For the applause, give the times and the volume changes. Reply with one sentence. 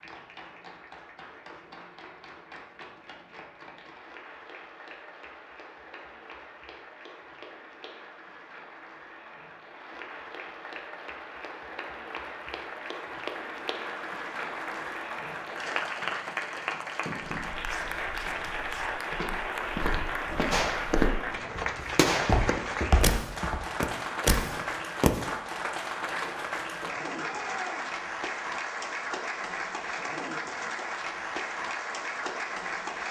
The applause can be heard from 0.0 to 33.0 s, getting louder.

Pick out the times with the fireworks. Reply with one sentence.
The fireworks can be heard from 20.5 to 21.1 s and from 21.9 to 25.3 s.